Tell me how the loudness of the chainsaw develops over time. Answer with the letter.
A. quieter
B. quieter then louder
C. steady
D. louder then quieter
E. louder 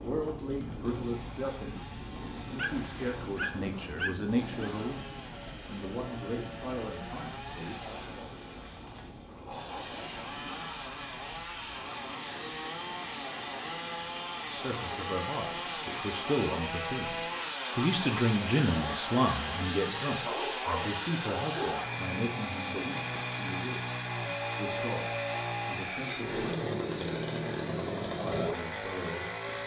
E.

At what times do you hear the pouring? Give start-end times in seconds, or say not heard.
not heard.